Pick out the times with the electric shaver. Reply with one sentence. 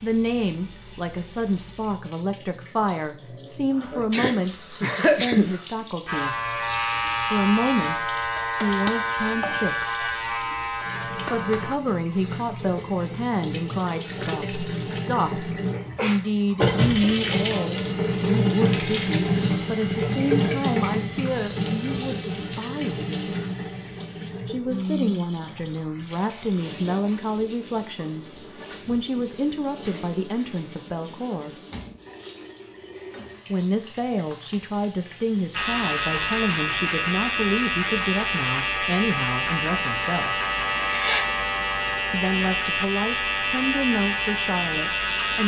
The electric shaver can be heard from 6.0 to 11.8 s and from 35.5 to 45.4 s.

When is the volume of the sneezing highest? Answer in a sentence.
The loudest moment of the sneezing is at 5 seconds.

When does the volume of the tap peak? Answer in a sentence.
The loudest moment of the tap is at 19 seconds.